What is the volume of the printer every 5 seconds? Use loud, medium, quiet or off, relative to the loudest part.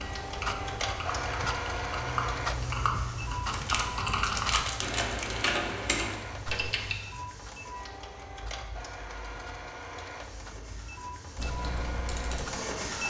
loud, medium, loud.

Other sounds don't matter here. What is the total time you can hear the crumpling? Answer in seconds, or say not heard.
2 s.